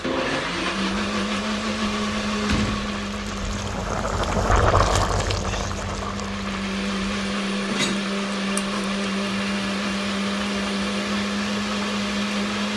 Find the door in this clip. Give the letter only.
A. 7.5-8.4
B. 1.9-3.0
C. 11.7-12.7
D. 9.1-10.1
B.